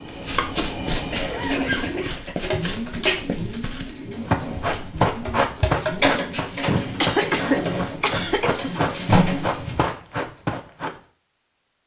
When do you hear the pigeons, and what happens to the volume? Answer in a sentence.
You can hear the pigeons from 1.2 to 9.8 s, getting quieter then louder.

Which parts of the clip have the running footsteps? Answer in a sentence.
The running footsteps can be heard from 0.1 to 11.0 s.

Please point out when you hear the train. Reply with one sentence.
The train can be heard from 0.0 to 2.3 s.